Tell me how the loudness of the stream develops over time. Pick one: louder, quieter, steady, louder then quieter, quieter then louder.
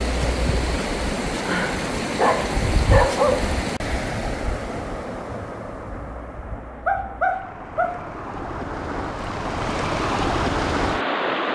quieter then louder.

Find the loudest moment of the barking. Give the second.
3 s.